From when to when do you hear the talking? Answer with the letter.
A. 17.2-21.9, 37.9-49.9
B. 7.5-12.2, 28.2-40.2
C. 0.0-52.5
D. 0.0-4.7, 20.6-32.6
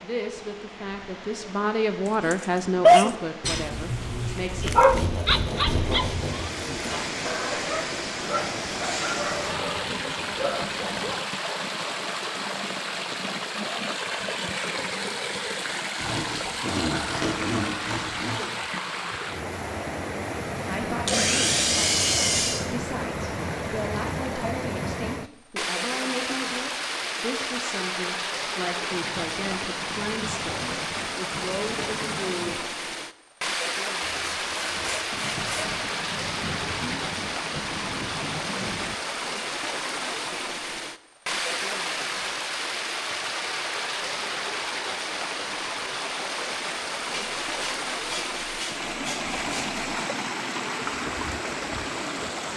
D.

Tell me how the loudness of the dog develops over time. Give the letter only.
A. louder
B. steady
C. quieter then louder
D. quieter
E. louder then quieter
D.